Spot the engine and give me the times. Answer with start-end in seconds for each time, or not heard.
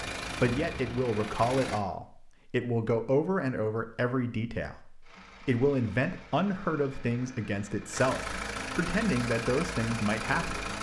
0.0-1.9, 5.0-10.7.